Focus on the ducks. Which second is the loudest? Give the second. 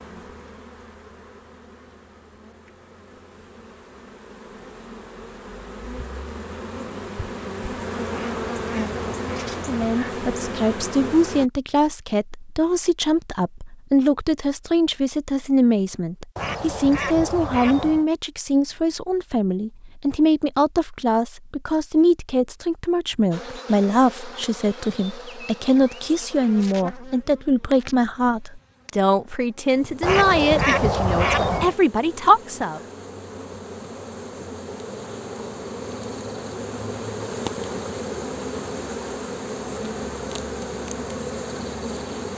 31 s.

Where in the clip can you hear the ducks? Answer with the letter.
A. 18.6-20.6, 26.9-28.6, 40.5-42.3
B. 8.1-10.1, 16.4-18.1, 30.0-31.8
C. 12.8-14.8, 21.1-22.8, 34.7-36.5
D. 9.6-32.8
B.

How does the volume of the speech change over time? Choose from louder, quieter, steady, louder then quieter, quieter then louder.
steady.